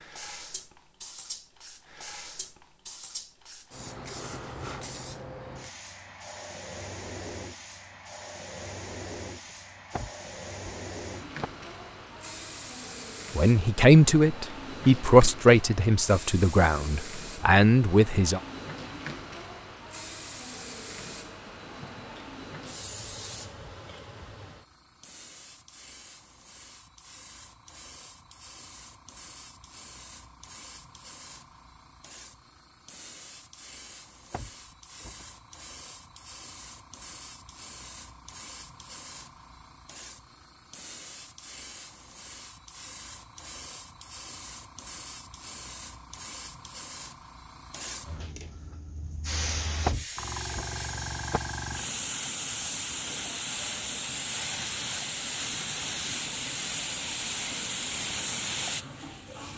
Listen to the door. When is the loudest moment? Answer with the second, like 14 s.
50 s.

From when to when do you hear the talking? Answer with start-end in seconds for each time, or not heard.
13.3-18.4.